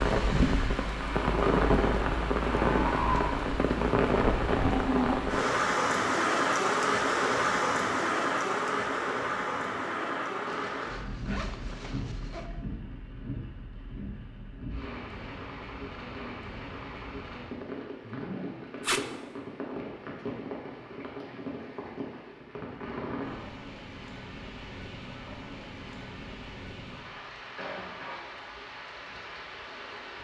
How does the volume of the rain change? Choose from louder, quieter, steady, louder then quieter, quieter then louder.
quieter.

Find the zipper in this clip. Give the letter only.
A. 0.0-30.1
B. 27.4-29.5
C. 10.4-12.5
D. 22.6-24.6
C.